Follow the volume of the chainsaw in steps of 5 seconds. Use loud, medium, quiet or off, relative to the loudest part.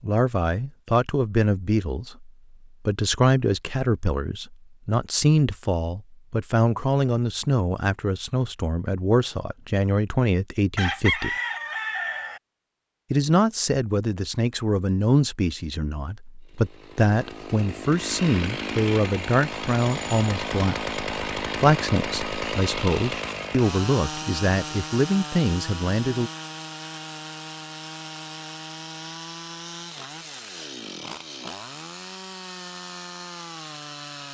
off, off, off, loud, loud, medium, medium.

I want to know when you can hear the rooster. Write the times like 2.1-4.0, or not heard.
10.8-12.4.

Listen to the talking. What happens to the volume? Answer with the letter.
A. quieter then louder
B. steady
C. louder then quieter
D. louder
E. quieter
B.